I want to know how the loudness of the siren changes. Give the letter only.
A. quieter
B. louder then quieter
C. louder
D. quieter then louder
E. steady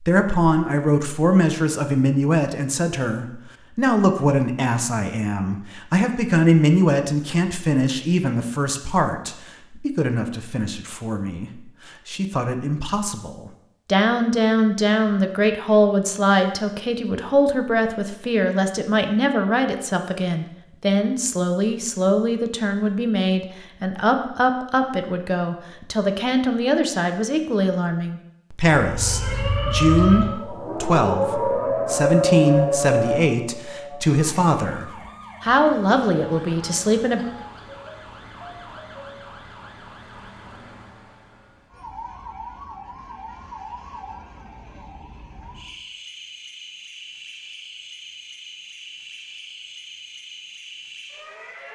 A.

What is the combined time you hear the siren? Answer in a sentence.
You can hear the siren for 23 seconds altogether.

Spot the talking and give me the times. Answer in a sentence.
The talking can be heard from 0.0 to 37.2 s.